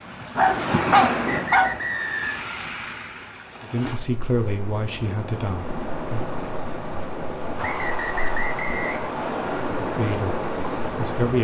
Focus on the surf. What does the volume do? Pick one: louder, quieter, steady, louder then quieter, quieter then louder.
quieter then louder.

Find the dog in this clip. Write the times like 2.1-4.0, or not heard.
0.3-1.8.